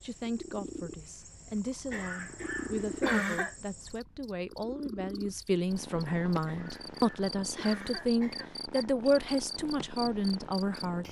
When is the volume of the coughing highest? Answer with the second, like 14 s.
3 s.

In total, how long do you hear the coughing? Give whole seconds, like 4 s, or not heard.
4 s.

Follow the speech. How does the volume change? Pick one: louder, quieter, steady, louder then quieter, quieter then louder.
louder.